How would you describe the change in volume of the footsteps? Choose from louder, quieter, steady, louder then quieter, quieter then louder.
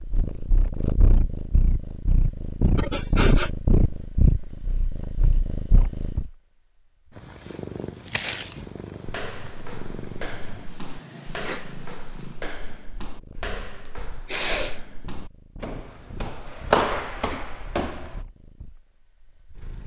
louder.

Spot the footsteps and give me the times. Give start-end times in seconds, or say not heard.
8.1-18.2.